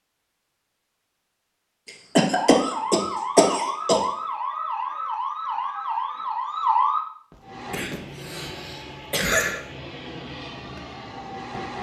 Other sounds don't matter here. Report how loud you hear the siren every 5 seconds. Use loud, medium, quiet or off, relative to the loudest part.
loud, loud, off.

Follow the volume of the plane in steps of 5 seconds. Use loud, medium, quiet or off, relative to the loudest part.
off, loud, loud.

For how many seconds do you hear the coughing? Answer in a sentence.
You can hear the coughing for 4 seconds altogether.